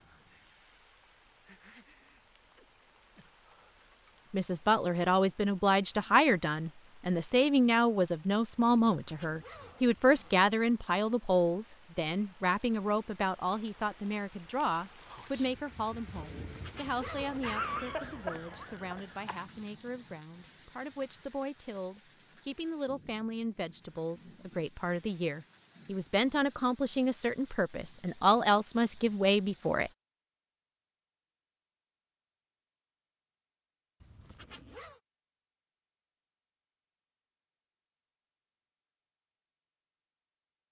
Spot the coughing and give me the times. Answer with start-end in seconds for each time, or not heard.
17.4-19.4.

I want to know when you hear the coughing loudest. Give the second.
18 s.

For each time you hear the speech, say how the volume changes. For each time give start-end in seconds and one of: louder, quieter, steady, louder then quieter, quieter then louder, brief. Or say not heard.
4.3-29.9 quieter then louder.